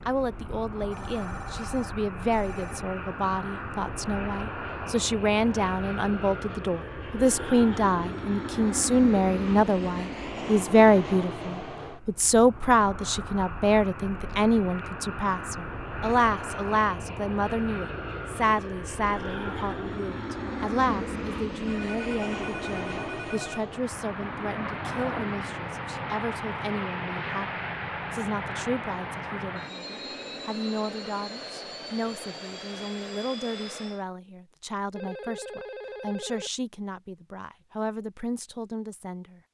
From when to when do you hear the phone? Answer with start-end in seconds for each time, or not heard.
0.9-2.9, 21.6-23.6, 35.0-36.5.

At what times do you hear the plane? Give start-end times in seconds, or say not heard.
0.0-34.0.